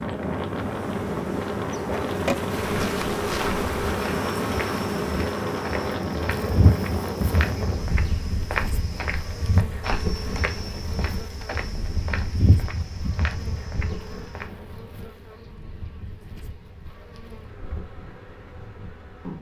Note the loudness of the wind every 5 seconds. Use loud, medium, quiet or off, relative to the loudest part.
loud, loud, medium, quiet.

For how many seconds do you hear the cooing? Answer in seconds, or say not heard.
not heard.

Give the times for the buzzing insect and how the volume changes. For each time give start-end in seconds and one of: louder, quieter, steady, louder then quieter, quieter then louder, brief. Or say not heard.
0.0-19.3 quieter.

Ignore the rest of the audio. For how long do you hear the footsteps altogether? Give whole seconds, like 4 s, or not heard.
12 s.